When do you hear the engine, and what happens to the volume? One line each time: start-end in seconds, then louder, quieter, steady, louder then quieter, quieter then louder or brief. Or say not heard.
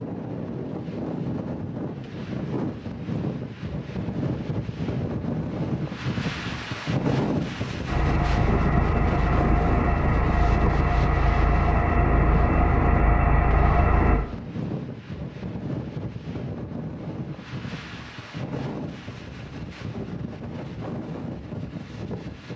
7.8-14.2 steady.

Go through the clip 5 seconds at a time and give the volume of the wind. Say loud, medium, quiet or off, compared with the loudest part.
loud, loud, loud, medium, medium.